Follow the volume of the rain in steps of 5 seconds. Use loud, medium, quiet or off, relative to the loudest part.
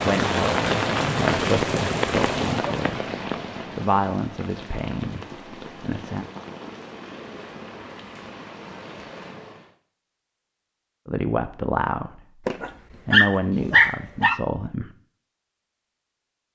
loud, quiet, off, off.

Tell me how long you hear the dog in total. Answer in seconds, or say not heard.
2 s.